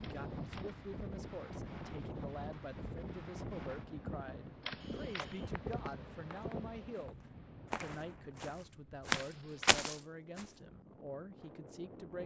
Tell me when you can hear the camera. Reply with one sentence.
The camera can be heard from 0.0 to 0.8 s, from 4.6 to 5.3 s and from 9.1 to 9.8 s.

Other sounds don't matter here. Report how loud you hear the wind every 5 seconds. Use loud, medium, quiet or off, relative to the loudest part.
loud, loud, medium.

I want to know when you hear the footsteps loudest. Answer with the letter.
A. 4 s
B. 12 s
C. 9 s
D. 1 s
C.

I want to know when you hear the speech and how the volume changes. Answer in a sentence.
You can hear the speech from 0.0 to 12.2 s, at a steady volume.